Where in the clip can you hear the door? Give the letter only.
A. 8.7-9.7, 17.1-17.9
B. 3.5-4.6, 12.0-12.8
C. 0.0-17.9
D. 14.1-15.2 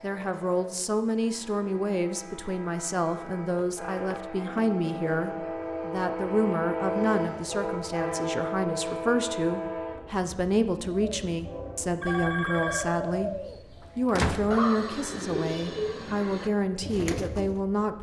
D.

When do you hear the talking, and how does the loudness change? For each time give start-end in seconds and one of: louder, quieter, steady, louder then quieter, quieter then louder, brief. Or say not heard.
0.0-17.9 steady.